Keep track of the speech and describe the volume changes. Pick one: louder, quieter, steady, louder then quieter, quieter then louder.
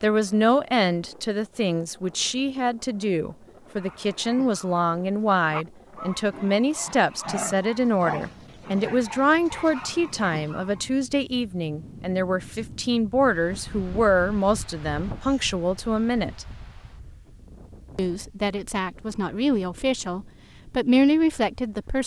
steady.